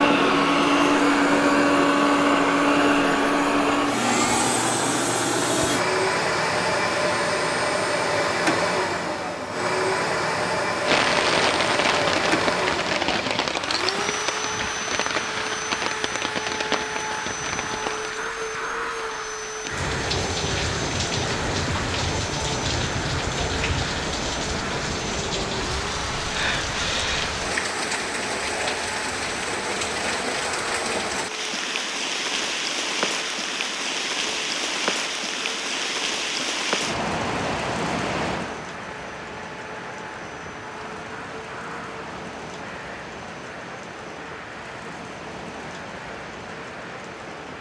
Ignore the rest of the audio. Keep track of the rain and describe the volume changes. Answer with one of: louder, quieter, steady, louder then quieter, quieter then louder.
quieter.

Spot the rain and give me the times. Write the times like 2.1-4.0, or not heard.
10.8-47.5.